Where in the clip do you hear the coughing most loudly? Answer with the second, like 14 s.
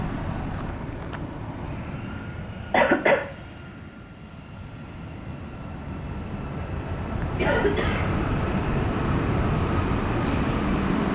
3 s.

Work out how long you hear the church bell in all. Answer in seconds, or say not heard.
not heard.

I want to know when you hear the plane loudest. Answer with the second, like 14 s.
11 s.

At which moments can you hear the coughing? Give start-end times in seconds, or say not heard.
2.7-3.2, 7.3-8.2.